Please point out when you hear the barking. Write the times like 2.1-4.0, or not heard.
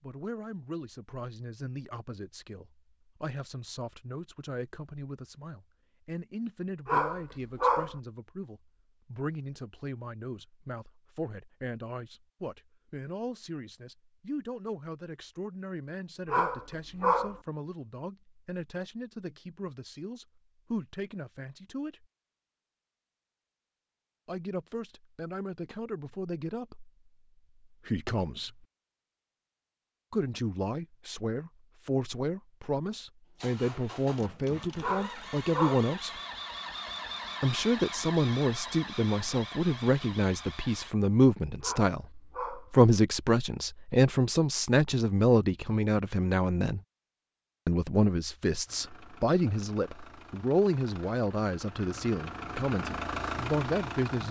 6.8-8.0, 16.3-17.4, 34.8-35.9, 41.6-42.7.